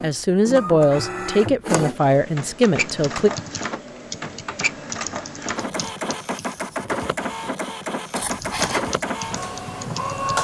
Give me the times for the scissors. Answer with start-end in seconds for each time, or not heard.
8.2-8.9.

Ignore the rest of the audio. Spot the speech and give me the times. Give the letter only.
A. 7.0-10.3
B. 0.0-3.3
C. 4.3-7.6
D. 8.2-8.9
B.